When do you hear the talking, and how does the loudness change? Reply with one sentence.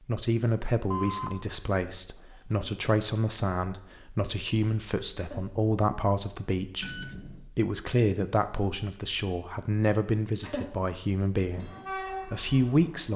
You can hear the talking from 0.1 to 13.1 s, at a steady volume.